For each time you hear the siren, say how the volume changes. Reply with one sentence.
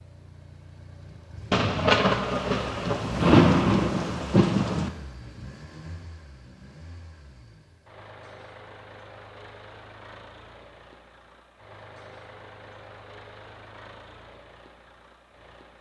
You can't hear the siren here.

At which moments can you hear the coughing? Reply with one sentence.
You can't hear the coughing here.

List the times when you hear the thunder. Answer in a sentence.
You can hear the thunder from 1.5 to 4.9 s.